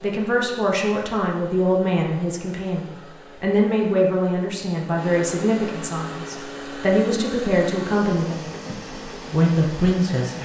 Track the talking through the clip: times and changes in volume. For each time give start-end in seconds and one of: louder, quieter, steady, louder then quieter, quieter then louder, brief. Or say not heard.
0.0-10.4 steady.